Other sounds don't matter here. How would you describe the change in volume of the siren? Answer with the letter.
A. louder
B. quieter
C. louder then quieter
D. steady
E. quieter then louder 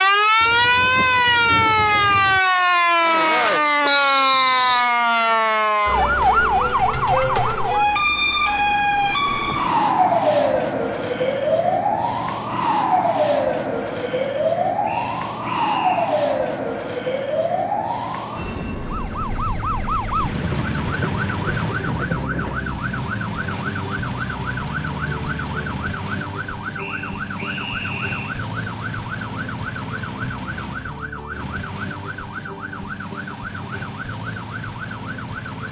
B.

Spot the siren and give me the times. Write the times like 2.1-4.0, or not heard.
0.0-35.6.